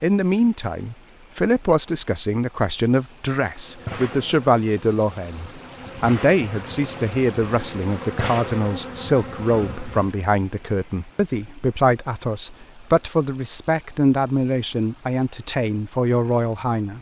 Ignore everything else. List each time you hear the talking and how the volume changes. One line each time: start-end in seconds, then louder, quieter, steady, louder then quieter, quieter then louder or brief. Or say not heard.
0.0-16.9 steady.